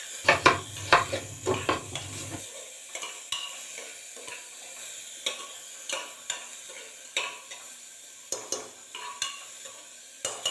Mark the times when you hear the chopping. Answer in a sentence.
The chopping can be heard from 0.2 to 2.4 s.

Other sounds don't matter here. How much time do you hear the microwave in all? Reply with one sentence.
The microwave can't be heard in this clip.